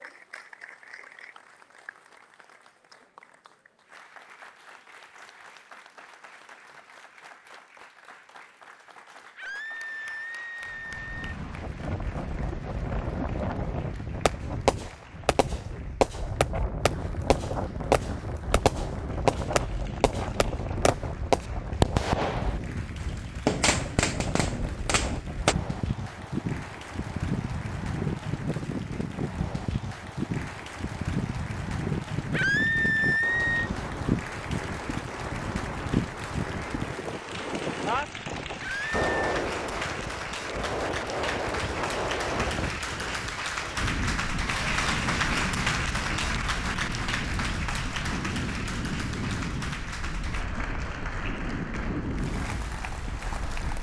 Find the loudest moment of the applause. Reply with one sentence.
The loudest moment of the applause is at 45 seconds.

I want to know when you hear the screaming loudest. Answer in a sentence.
The volume of the screaming peaks at 33 seconds.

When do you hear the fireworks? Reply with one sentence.
You can hear the fireworks from 14.2 to 25.6 s.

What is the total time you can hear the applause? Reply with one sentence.
You can hear the applause for 54 seconds altogether.